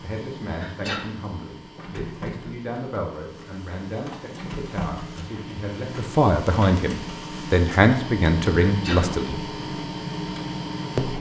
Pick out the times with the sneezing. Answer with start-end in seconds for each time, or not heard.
0.6-1.1, 8.7-9.1.